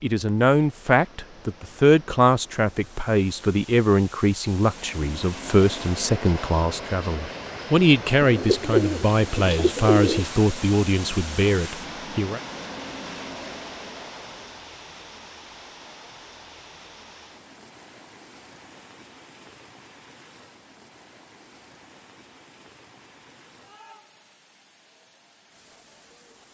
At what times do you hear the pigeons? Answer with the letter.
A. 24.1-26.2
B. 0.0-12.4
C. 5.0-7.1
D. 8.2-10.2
D.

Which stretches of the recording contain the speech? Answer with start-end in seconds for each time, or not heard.
0.0-12.4.